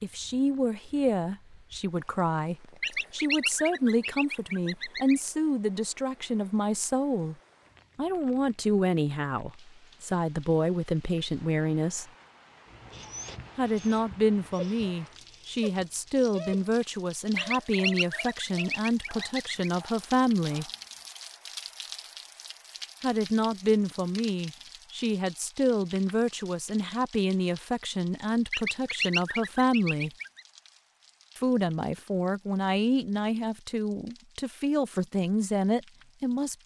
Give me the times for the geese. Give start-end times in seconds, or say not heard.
2.8-5.2, 17.4-19.7, 28.5-30.4.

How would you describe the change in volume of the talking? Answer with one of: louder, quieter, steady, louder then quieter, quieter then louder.
steady.